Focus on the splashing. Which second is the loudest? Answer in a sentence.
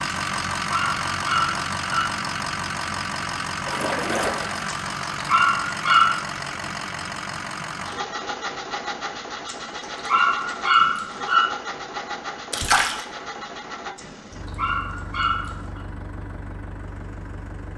The loudest moment of the splashing is at 13 seconds.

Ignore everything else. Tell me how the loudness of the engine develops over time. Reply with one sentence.
The loudness of the engine goes down.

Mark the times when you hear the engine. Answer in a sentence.
You can hear the engine from 0.0 to 17.7 s.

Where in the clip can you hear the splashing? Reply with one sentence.
The splashing can be heard from 3.6 to 4.8 s and from 12.5 to 13.1 s.